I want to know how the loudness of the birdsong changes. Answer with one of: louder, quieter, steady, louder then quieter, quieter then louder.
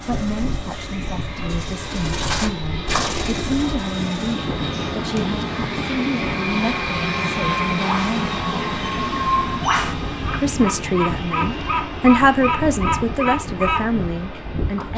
louder.